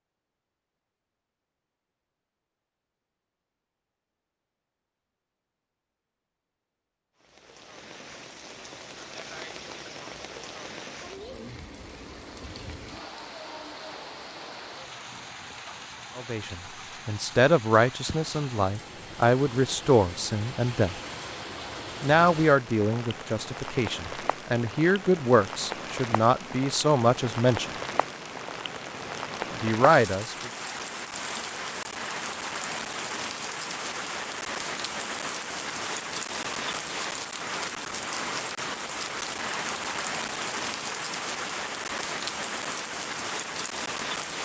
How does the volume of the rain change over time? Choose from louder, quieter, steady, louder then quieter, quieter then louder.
louder.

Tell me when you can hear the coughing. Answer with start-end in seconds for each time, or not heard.
not heard.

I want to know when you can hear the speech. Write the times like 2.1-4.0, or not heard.
16.1-20.9, 22.0-27.7, 29.5-30.5.